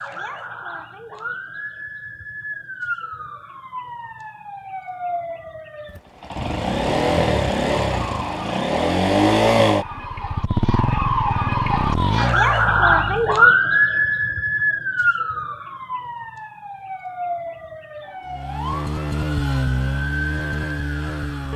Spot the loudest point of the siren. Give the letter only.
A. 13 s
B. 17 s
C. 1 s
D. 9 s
A.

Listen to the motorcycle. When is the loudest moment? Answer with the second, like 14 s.
9 s.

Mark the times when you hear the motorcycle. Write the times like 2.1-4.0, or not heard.
5.8-13.5, 18.2-21.5.